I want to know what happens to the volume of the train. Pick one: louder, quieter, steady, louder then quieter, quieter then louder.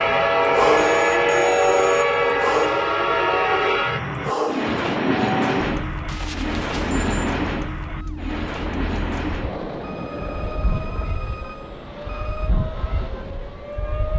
quieter.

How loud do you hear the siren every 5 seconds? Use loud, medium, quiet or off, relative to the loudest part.
loud, medium, medium.